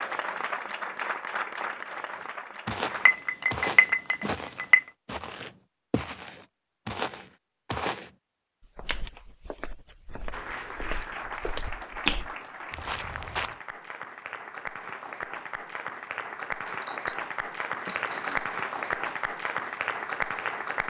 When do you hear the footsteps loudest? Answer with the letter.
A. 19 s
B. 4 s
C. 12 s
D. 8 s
C.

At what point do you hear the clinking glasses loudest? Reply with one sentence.
The volume of the clinking glasses peaks at 4 seconds.